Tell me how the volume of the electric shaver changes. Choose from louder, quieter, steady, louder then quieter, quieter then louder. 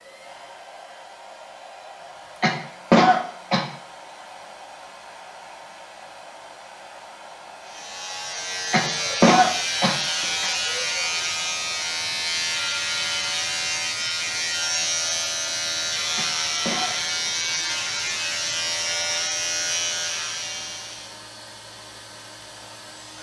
steady.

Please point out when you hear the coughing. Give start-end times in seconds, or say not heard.
2.4-3.6, 8.7-10.5, 16.1-17.3.